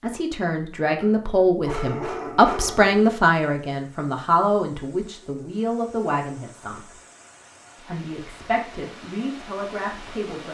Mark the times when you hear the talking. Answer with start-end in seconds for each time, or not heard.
0.0-6.9, 7.8-10.4.